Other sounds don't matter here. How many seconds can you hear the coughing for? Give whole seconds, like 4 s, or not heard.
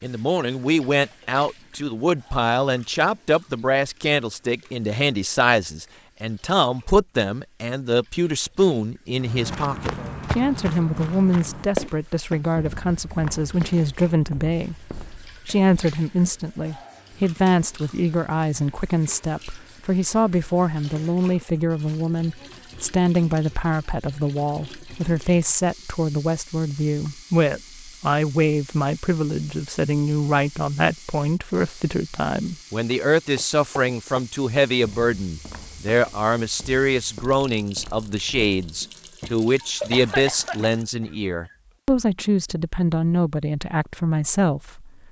2 s.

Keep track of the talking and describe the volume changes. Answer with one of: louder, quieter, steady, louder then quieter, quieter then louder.
steady.